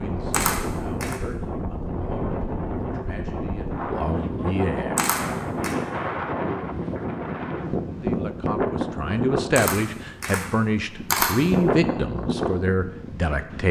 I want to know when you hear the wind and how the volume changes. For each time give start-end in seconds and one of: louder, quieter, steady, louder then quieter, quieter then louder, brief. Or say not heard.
0.0-13.6 steady.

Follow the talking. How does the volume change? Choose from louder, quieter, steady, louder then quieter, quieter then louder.
louder.